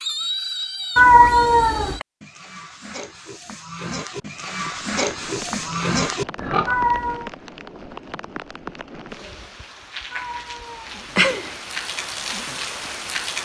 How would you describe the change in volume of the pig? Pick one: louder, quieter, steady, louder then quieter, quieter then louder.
quieter then louder.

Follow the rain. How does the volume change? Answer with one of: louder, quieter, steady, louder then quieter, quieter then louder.
louder.